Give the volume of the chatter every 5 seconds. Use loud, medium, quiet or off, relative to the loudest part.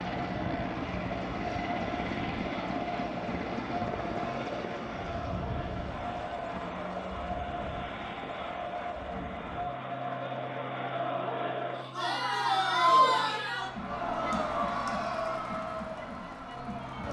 medium, medium, loud, medium.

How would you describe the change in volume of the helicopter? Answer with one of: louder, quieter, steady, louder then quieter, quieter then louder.
quieter.